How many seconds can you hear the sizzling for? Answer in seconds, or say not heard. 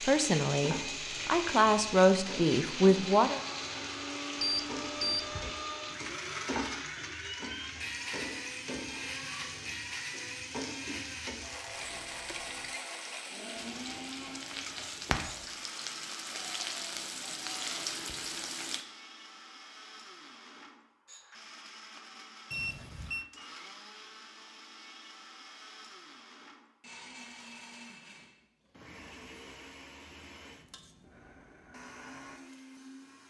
19 s.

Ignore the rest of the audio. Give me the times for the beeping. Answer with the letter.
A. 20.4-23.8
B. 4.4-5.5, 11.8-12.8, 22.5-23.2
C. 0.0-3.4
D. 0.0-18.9
B.